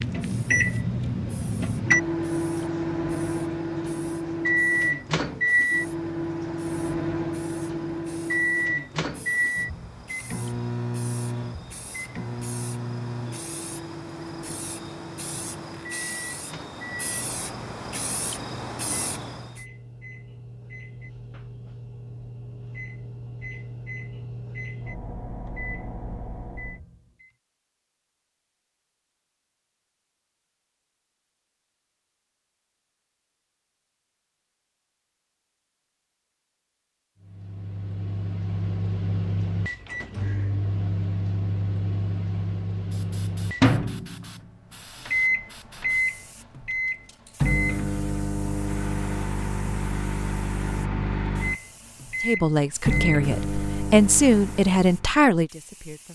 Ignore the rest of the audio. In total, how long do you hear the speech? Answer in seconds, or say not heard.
4 s.